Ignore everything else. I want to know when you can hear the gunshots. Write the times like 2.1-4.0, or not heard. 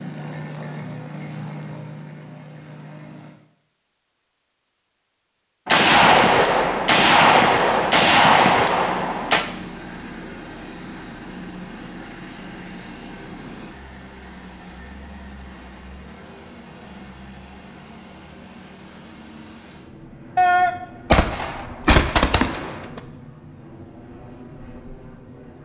5.7-9.4, 20.4-23.0.